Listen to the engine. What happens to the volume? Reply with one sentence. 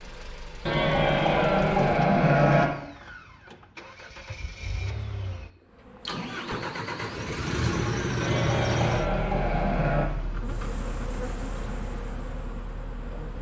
The loudness of the engine goes up, then down.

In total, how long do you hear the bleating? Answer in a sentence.
You can hear the bleating for 4 seconds altogether.